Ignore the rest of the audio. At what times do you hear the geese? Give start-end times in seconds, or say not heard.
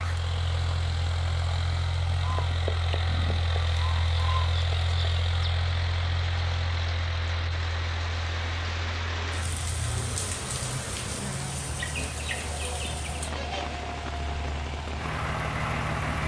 2.1-4.5, 11.8-13.8.